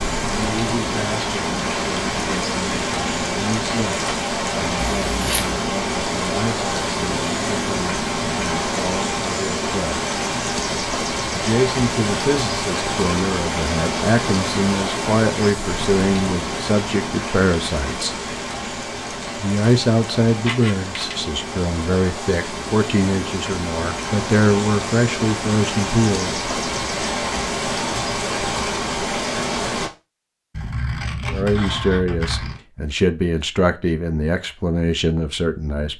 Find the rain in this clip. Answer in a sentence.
You can hear the rain from 0.0 to 29.9 s.